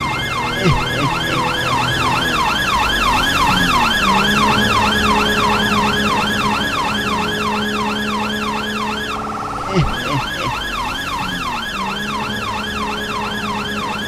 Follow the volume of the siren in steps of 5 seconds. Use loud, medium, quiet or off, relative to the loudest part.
loud, loud, medium.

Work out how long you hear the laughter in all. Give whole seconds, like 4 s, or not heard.
2 s.